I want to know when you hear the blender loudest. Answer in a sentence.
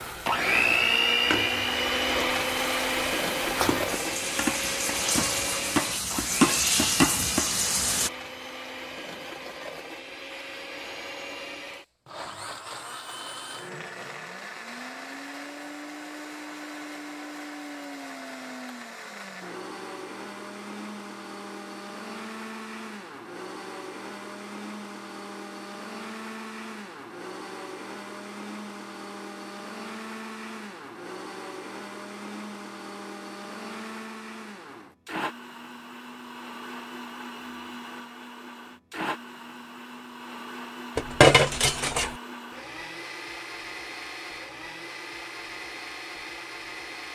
The volume of the blender peaks at 1 second.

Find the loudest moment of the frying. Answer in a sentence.
The loudest moment of the frying is at 7 seconds.